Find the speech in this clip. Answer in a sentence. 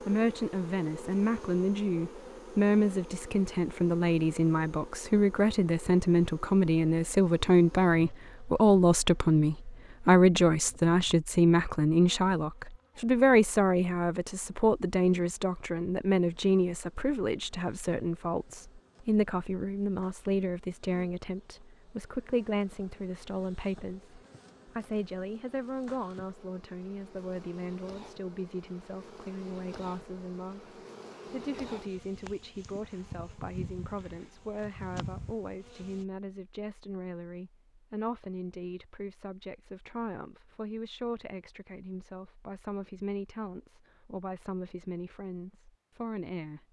You can hear the speech from 0.1 to 46.6 s.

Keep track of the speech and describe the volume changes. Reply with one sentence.
The volume of the speech goes down.